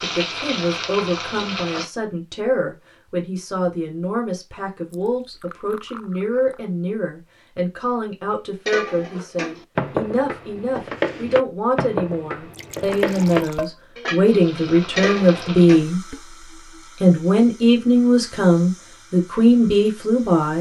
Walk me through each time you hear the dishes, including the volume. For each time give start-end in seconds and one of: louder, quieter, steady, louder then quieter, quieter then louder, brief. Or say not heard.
8.7-16.2 steady.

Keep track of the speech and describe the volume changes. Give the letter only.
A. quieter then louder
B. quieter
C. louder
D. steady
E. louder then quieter
C.